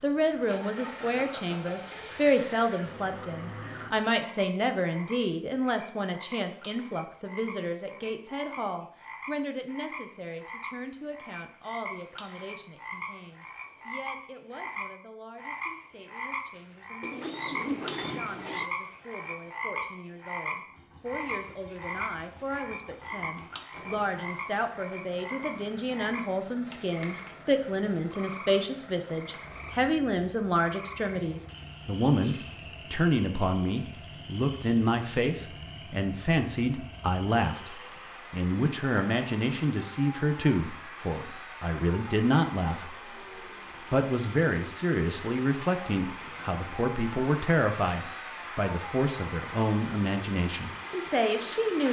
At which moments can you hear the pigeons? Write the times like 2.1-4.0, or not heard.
17.0-18.7.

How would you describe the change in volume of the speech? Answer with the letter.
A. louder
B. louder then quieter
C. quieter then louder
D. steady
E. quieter
C.